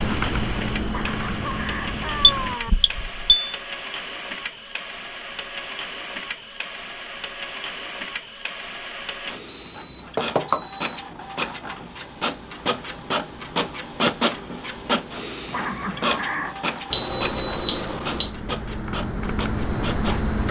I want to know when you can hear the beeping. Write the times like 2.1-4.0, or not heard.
2.4-3.5, 9.5-10.8, 16.9-18.4.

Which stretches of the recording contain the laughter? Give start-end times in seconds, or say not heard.
0.9-2.7, 15.5-16.6.